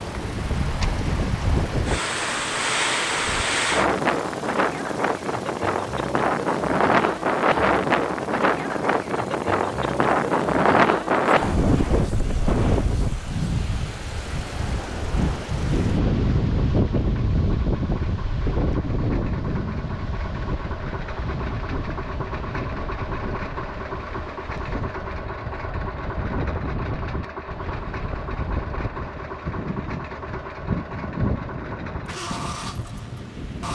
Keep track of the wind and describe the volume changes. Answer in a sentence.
The volume of the wind goes down.